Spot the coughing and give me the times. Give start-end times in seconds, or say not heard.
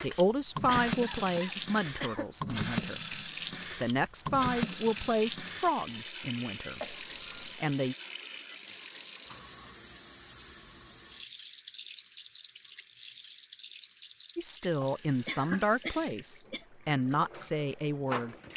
0.7-2.3, 6.8-7.5, 14.8-16.6.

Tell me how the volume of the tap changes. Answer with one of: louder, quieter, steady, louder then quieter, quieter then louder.
quieter.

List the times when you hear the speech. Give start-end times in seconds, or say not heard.
0.0-8.0, 14.3-18.4.